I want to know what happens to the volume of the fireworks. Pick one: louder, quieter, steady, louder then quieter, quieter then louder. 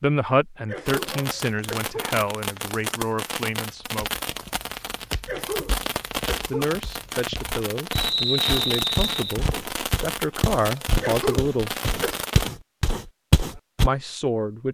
steady.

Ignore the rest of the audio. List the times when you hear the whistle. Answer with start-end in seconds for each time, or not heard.
7.9-9.3.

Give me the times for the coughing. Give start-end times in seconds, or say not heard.
0.7-2.2, 5.2-6.8, 11.0-12.2.